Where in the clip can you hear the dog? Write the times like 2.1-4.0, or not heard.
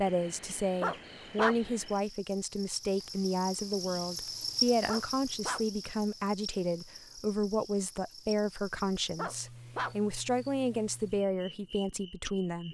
0.8-1.6, 4.8-5.7, 9.2-9.9.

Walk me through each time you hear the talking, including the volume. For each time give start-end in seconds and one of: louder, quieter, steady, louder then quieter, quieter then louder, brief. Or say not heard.
0.0-12.7 steady.